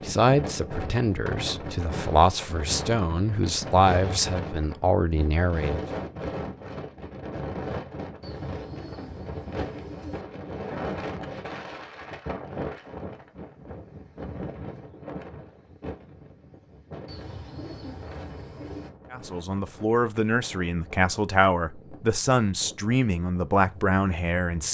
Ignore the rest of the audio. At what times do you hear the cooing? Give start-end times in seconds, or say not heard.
8.2-10.2, 17.1-18.9.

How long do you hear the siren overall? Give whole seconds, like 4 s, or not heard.
not heard.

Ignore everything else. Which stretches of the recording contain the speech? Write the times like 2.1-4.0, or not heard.
0.1-5.8, 19.1-24.7.